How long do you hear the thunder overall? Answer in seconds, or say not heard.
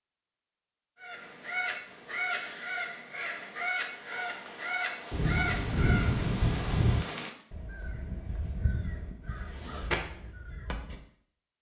2 s.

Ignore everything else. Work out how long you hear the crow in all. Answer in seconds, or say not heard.
10 s.